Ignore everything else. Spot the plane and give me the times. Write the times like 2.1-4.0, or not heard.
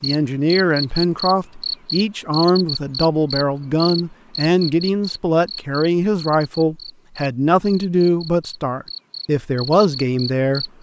not heard.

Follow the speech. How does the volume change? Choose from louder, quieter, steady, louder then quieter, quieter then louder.
steady.